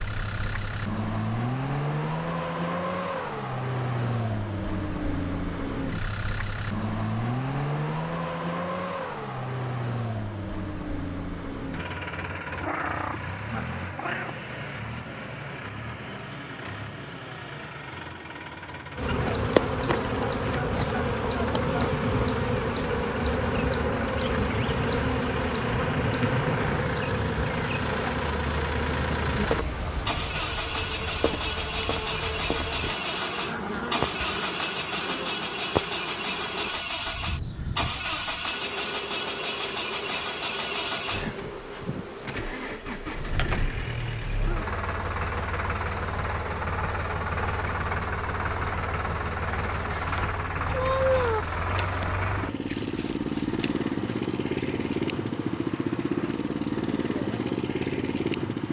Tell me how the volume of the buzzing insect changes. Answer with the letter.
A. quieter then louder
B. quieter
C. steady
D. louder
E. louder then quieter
B.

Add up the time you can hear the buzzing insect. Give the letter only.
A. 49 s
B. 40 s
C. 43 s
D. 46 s
B.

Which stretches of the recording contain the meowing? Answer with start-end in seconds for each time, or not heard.
12.6-14.5, 26.2-26.8, 50.7-51.5.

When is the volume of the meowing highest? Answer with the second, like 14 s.
51 s.